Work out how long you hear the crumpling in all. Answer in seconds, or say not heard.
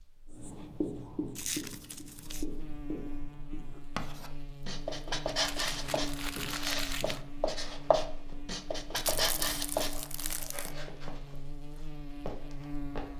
5 s.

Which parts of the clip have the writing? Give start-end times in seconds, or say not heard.
0.3-9.9.